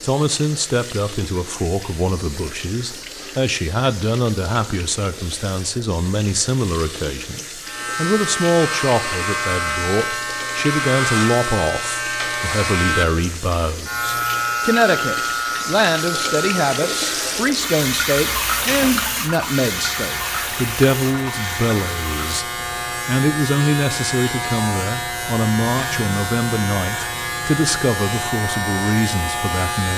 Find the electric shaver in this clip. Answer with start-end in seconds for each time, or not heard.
7.6-29.9.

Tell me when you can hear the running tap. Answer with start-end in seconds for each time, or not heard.
0.0-22.4.